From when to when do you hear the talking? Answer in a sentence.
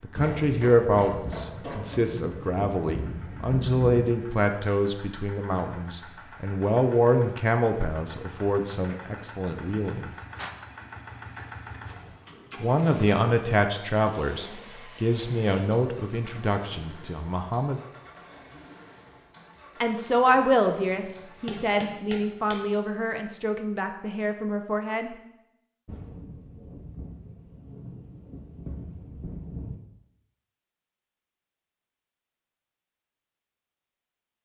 You can hear the talking from 0.0 to 10.1 s, from 12.6 to 17.8 s and from 19.8 to 25.1 s.